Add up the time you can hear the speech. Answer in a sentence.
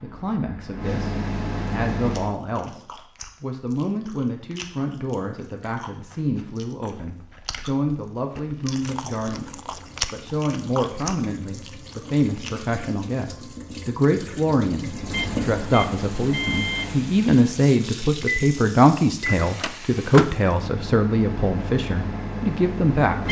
You can hear the speech for 22 seconds altogether.